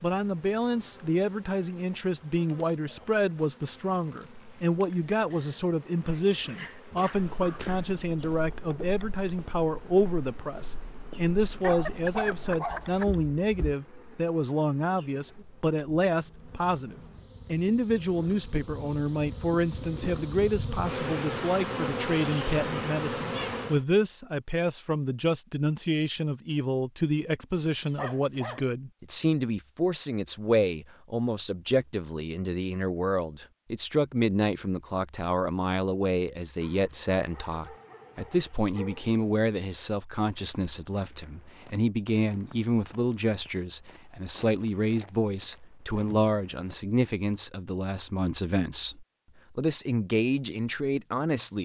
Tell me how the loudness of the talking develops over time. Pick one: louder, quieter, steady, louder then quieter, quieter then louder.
steady.